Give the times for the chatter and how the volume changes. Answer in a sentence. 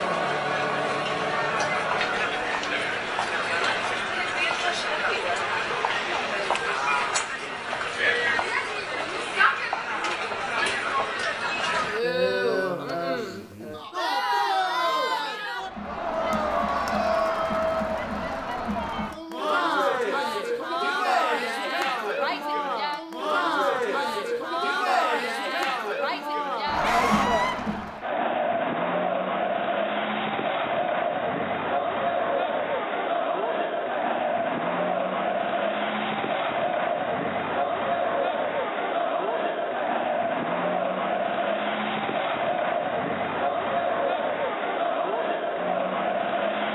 You can hear the chatter from 0.0 to 46.7 s, at a steady volume.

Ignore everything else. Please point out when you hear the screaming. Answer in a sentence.
The screaming can be heard from 26.8 to 27.6 s.